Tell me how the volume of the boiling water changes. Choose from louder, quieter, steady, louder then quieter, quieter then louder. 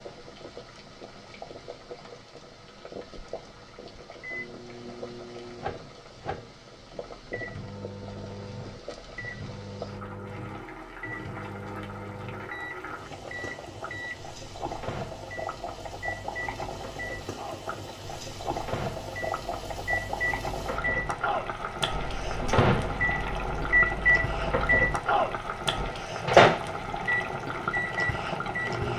louder.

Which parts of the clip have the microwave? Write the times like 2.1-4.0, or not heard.
4.2-28.9.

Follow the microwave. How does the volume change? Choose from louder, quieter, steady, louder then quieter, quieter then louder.
louder.